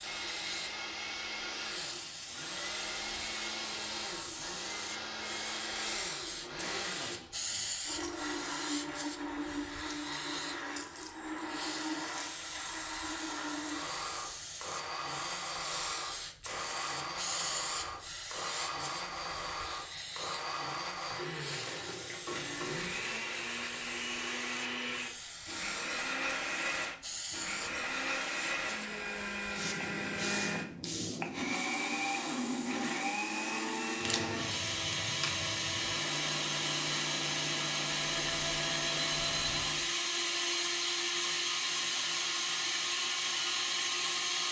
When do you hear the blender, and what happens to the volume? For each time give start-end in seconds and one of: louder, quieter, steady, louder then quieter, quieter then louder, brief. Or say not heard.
0.0-44.4 louder.